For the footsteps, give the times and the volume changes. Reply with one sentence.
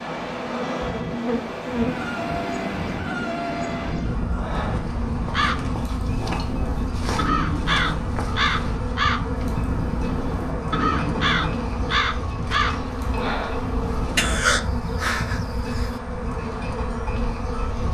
The footsteps can't be heard in this clip.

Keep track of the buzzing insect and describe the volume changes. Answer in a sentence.
The loudness of the buzzing insect stays about the same.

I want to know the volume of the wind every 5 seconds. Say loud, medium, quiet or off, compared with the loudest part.
loud, loud, loud, medium.